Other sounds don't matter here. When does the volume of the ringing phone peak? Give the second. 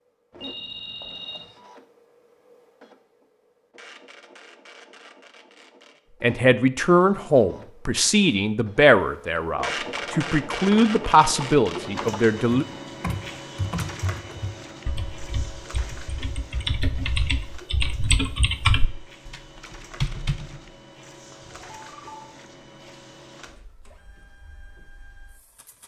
1 s.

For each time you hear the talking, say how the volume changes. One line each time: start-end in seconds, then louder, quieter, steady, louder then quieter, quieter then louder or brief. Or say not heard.
6.2-12.7 steady.